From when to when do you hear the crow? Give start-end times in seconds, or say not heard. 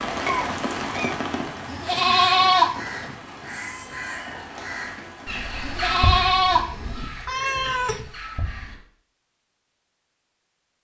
2.0-8.8.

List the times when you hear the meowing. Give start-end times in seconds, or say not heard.
0.2-1.1, 6.5-8.1.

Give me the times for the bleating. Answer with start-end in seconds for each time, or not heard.
1.6-3.1, 5.6-7.1.